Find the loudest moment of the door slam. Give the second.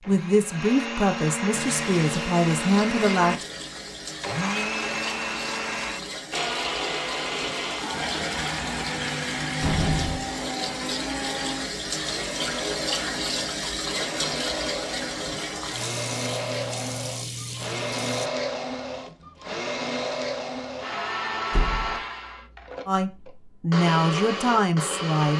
10 s.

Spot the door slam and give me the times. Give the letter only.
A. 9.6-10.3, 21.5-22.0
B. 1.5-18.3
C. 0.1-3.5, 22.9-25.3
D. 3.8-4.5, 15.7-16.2
A.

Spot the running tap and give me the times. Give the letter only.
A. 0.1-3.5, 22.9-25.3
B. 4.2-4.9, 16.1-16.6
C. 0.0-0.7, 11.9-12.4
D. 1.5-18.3
D.